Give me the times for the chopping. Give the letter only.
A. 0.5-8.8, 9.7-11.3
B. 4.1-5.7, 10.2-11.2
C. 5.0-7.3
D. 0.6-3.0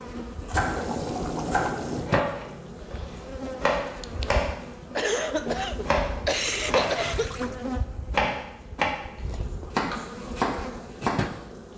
A.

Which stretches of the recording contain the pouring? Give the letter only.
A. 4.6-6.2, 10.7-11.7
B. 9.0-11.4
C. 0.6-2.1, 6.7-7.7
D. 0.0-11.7
C.